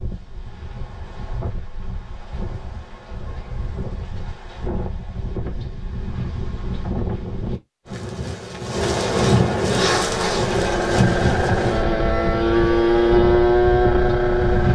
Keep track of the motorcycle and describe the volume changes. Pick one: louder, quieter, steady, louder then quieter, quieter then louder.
louder.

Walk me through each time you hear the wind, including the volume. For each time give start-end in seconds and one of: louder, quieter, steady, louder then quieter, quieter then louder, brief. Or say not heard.
0.0-14.7 louder then quieter.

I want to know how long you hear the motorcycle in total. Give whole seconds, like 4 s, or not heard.
5 s.